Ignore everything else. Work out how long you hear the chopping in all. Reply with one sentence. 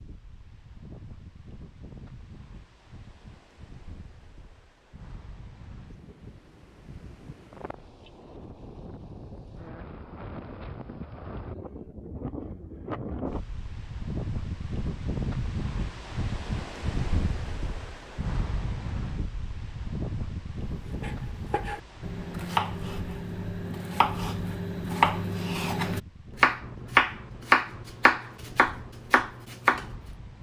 You can hear the chopping for 9 seconds altogether.